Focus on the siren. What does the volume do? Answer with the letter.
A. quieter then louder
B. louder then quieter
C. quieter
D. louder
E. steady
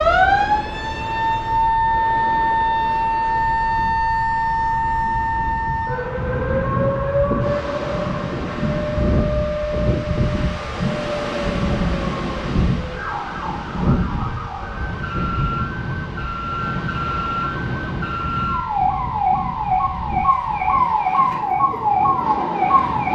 A.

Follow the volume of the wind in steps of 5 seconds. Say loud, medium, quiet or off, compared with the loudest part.
medium, loud, loud, medium, medium.